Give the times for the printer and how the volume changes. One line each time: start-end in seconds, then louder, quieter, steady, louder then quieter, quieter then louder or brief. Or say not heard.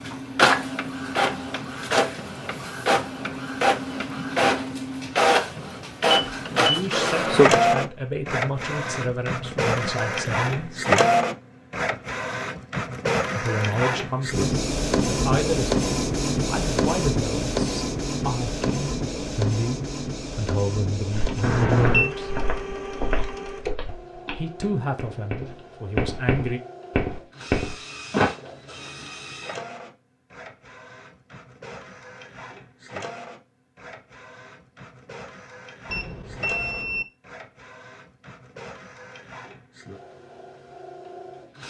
0.0-41.6 quieter.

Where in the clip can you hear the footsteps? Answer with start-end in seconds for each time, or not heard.
21.1-28.3.